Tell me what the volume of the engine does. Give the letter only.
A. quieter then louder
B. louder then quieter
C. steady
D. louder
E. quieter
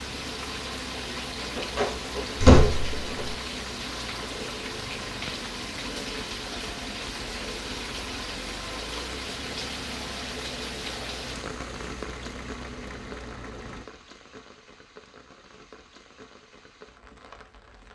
C.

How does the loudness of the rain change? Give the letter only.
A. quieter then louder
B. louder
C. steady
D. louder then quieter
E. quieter
E.